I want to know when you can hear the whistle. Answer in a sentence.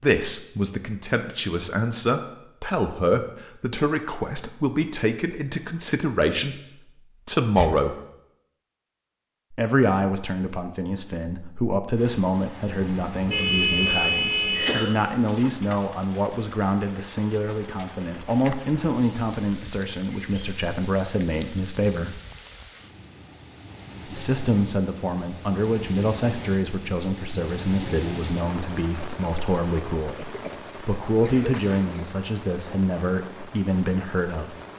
The whistle can't be heard in this clip.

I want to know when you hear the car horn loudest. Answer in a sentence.
The volume of the car horn peaks at 14 seconds.